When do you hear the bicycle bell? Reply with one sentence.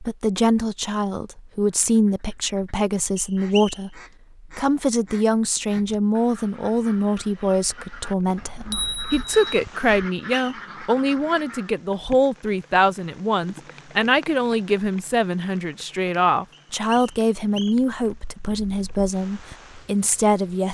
The bicycle bell can be heard from 8.3 to 9.6 s.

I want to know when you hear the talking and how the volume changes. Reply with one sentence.
The talking can be heard from 0.0 to 20.6 s, at a steady volume.